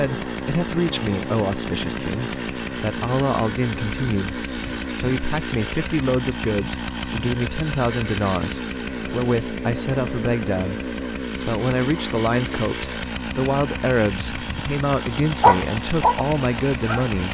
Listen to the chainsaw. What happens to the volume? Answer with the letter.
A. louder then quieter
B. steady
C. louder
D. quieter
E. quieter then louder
B.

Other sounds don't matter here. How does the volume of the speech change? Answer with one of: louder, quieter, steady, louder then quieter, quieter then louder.
steady.